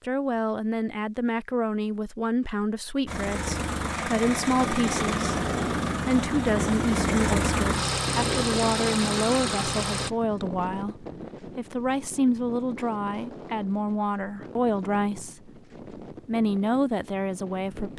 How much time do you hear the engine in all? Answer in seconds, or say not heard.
7 s.